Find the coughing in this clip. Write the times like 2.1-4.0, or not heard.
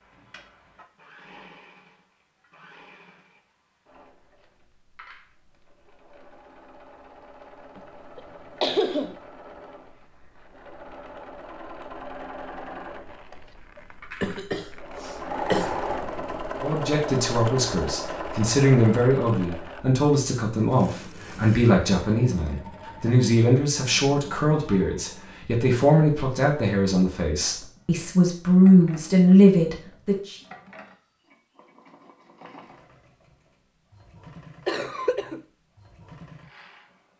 7.8-9.2, 13.8-15.8, 34.6-35.5.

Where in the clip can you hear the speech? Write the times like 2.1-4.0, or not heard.
16.6-30.4.